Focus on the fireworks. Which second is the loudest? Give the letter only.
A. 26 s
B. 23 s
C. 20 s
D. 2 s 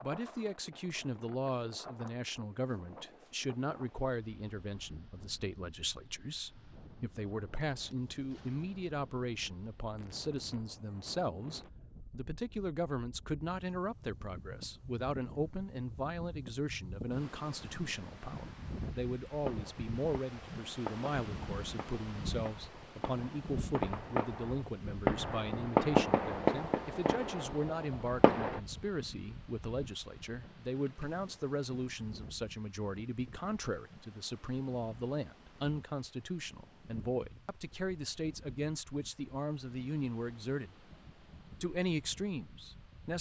A.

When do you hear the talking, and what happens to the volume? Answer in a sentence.
You can hear the talking from 0.0 to 40.9 s, at a steady volume; and briefly from 41.6 to 43.1 s.